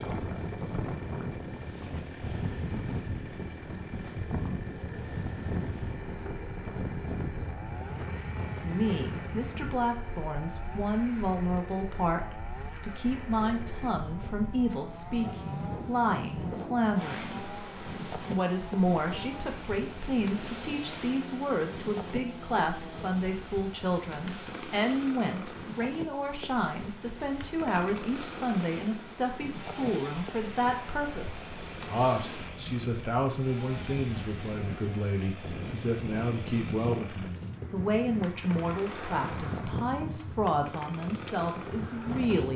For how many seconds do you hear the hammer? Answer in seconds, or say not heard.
not heard.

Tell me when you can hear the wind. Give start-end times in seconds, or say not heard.
0.0-42.5.